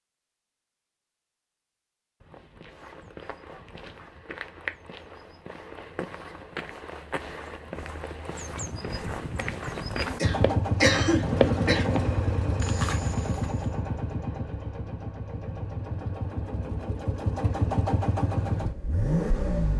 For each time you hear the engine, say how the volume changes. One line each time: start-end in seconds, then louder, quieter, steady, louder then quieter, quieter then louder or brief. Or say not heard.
10.2-19.7 quieter then louder.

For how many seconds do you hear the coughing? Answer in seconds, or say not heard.
2 s.